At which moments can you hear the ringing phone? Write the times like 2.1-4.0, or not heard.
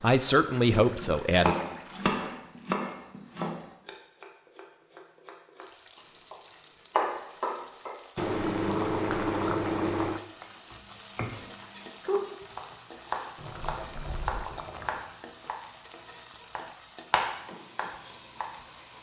not heard.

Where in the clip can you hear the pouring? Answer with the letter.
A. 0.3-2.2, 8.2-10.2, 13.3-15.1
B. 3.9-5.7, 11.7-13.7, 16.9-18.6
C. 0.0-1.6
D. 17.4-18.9
A.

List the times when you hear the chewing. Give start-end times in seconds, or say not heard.
not heard.